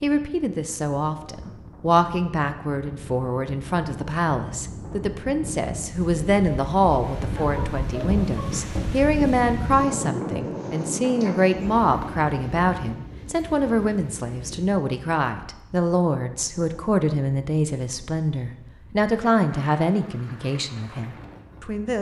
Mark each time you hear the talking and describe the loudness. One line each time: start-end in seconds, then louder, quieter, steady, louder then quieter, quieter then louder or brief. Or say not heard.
0.0-21.9 steady.